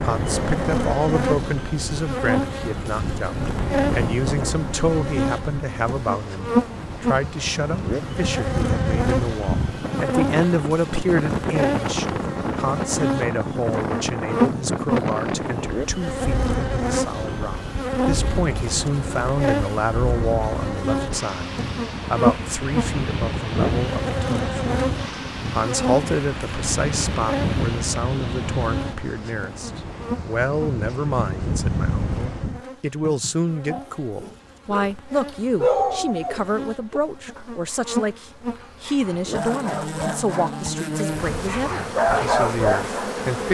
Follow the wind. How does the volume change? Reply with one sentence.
The loudness of the wind stays about the same.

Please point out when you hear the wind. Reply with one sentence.
You can hear the wind from 0.0 to 32.6 s.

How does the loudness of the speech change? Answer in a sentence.
The volume of the speech stays about the same.